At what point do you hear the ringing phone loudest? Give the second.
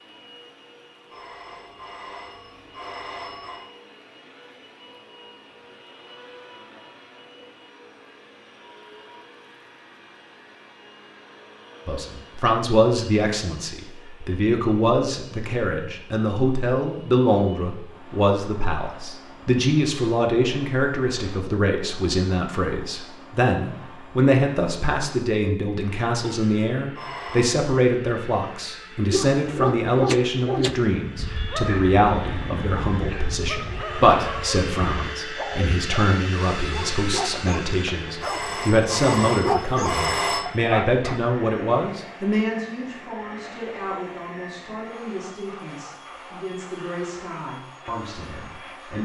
40 s.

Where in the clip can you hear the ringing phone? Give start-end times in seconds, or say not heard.
1.1-3.6, 26.9-27.6, 38.2-40.5.